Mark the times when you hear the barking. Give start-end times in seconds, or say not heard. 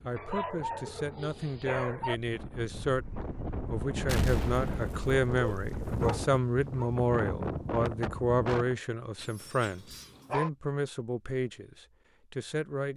0.1-2.1, 5.3-6.9, 9.2-10.5.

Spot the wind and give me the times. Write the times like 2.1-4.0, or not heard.
0.0-8.8.